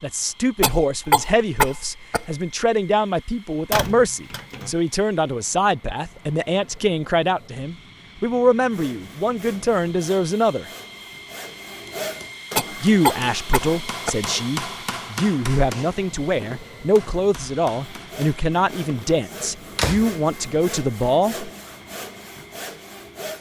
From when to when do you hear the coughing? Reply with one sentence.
The coughing can be heard from 0.6 to 2.5 s and from 12.6 to 14.3 s.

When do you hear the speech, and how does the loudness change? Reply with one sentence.
You can hear the speech from 0.0 to 10.7 s, at a steady volume; and from 12.8 to 21.5 s, at a steady volume.